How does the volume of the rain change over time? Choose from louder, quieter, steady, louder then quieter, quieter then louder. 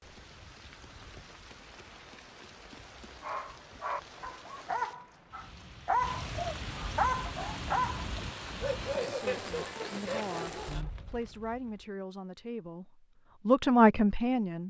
louder.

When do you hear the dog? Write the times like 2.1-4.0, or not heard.
3.2-10.9.